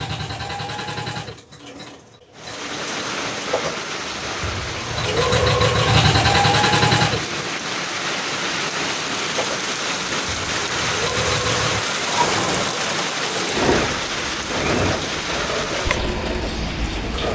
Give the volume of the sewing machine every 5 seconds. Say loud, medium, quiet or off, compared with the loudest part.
quiet, loud, medium, medium.